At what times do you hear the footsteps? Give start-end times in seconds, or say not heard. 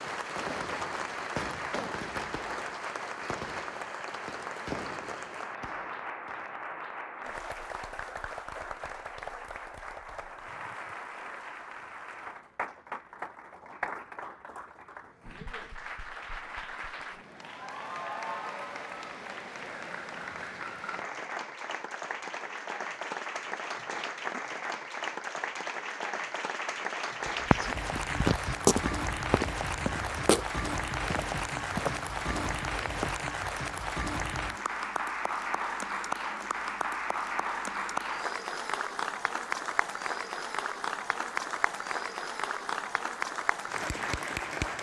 27.2-33.2.